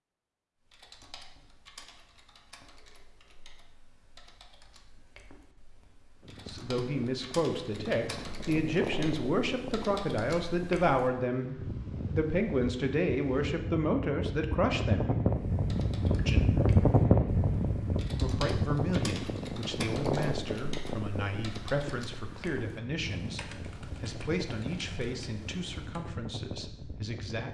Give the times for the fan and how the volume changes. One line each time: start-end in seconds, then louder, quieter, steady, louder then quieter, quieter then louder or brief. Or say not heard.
6.2-27.4 louder then quieter.